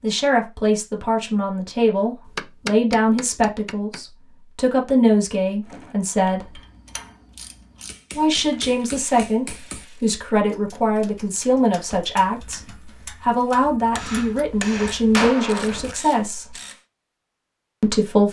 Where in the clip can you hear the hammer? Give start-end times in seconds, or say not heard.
2.2-4.0, 7.8-9.8, 13.9-15.9.